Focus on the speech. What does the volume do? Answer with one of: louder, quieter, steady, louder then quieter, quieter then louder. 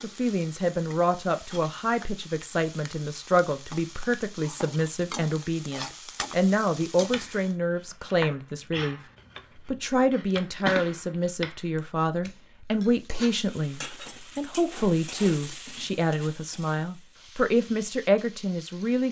steady.